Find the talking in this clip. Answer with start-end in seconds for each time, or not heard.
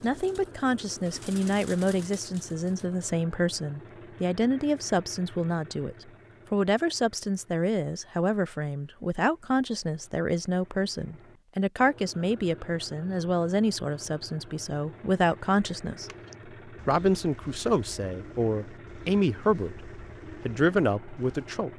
0.0-21.7.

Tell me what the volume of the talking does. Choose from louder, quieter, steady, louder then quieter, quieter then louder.
steady.